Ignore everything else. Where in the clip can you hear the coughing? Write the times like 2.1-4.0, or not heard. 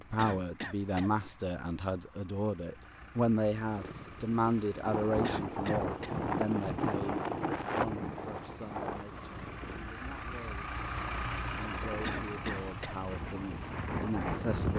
0.1-1.1, 5.2-6.2, 12.0-12.9.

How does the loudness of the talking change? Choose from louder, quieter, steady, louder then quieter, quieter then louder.
quieter then louder.